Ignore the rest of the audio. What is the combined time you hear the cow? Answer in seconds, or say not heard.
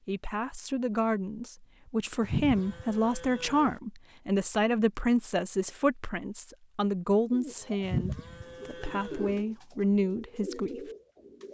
3 s.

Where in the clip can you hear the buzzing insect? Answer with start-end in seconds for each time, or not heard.
not heard.